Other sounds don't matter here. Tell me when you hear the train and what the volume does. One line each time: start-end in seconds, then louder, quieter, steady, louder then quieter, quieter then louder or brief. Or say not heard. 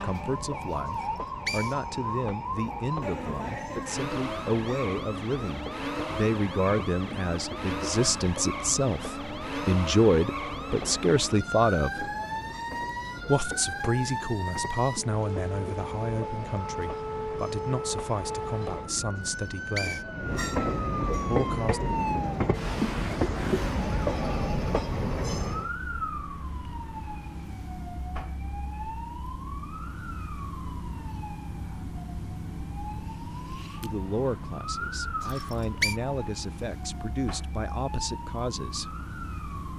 0.0-25.7 louder.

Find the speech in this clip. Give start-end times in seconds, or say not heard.
0.0-12.1, 13.2-20.1, 21.2-21.8, 33.8-39.0.